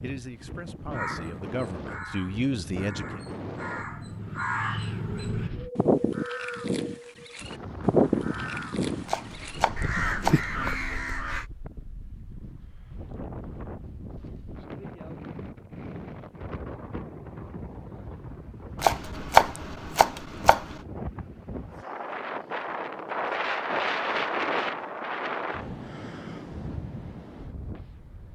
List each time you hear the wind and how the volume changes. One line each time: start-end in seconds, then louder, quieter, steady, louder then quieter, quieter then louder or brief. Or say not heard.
0.0-28.3 louder.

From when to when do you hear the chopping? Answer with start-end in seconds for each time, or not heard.
9.1-10.6, 18.8-20.8.